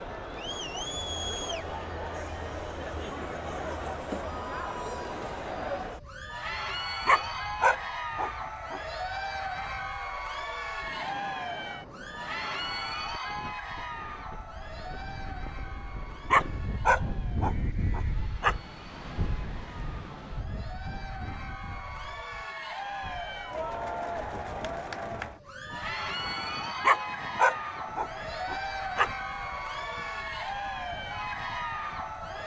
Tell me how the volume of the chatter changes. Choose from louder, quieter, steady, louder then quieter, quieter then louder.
quieter then louder.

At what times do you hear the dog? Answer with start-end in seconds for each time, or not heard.
7.0-8.8, 16.3-18.6, 26.8-29.1.